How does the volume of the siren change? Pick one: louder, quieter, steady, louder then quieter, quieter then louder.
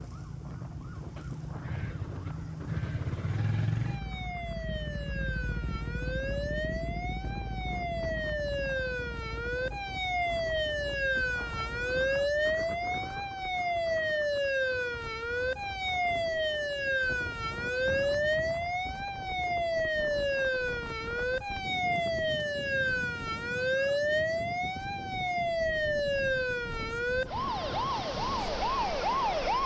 louder.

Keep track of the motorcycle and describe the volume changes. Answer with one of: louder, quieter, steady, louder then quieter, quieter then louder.
quieter.